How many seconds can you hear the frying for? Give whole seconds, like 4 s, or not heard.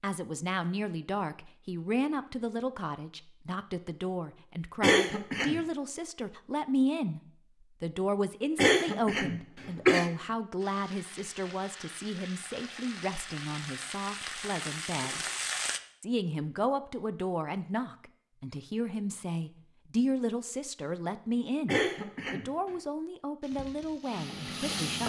7 s.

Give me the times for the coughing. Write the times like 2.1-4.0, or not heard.
4.8-5.6, 8.6-10.1, 21.6-22.5.